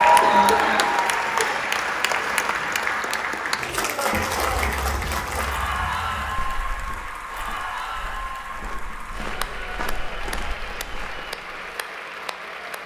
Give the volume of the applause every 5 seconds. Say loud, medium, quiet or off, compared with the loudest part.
loud, medium, quiet.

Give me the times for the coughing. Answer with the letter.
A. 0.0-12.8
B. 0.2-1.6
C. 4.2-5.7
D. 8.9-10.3
B.